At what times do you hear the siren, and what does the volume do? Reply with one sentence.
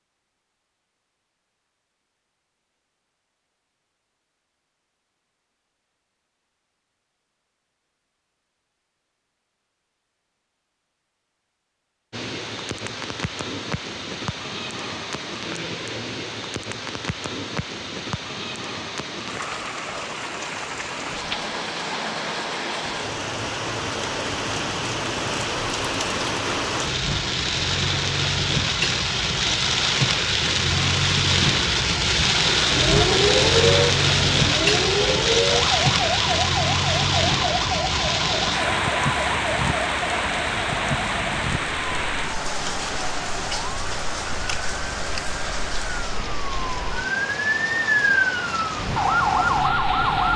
You can hear the siren from 32.6 to 50.3 s, getting quieter then louder.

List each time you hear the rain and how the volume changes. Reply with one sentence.
The rain can be heard from 12.1 to 50.3 s, getting louder then quieter.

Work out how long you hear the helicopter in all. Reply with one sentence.
The helicopter can't be heard in this clip.